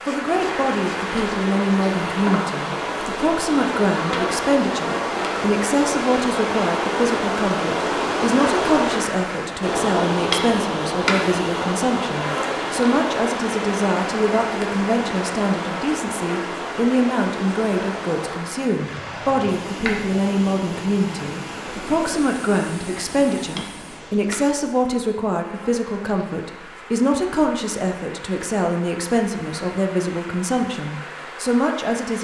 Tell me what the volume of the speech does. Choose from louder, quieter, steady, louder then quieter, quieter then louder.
steady.